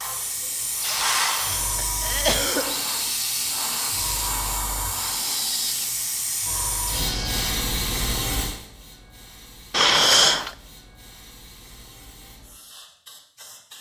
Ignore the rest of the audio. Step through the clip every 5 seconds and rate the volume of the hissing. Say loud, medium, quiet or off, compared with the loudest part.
loud, loud, quiet.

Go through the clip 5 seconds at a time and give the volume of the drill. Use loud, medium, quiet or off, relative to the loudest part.
loud, loud, off.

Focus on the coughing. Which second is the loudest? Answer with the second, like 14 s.
10 s.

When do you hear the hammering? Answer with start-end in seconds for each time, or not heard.
not heard.